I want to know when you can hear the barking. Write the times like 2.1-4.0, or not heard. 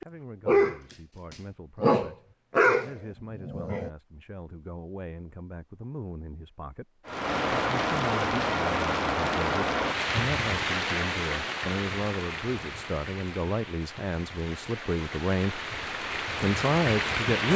0.0-3.9.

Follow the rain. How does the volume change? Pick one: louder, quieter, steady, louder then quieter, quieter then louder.
quieter then louder.